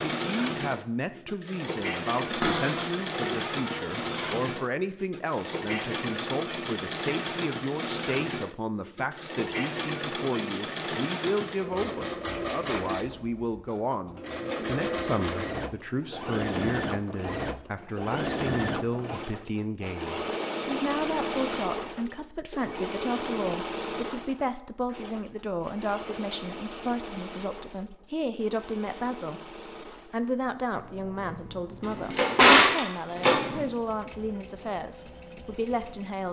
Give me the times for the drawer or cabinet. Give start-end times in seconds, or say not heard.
2.3-4.3, 31.8-33.6.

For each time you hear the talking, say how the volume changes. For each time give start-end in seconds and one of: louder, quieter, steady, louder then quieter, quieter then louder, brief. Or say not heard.
0.0-36.2 steady.